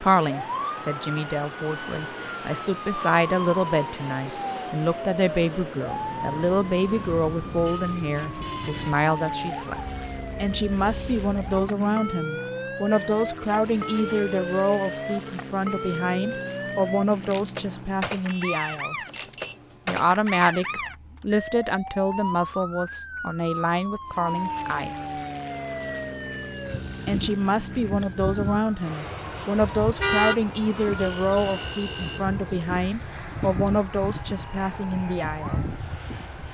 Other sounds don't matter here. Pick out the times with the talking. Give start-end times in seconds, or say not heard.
0.0-9.8, 10.4-18.9, 19.9-25.1, 27.1-35.6.